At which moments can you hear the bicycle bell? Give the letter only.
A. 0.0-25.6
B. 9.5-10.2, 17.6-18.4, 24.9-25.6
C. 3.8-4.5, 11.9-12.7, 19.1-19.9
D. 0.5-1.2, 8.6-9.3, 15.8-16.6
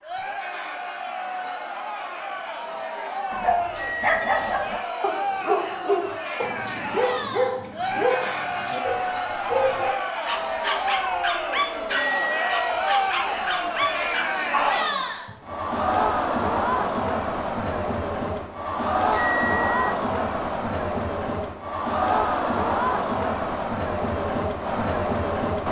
C.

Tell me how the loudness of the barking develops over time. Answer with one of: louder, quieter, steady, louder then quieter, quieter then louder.
steady.